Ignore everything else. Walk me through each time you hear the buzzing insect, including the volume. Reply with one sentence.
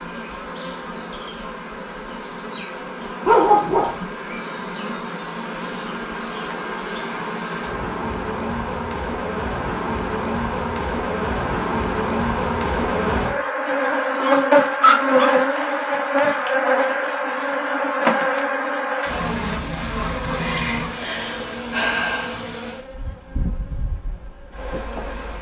You can hear the buzzing insect from 0.0 to 25.3 s, getting louder then quieter.